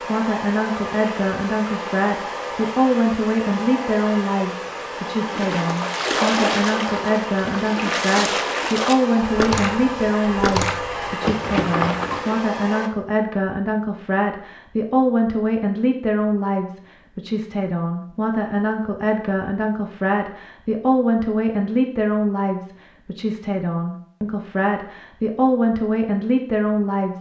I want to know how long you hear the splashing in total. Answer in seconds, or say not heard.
7 s.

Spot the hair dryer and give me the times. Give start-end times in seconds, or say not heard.
0.0-12.9.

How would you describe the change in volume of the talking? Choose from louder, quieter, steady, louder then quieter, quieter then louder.
steady.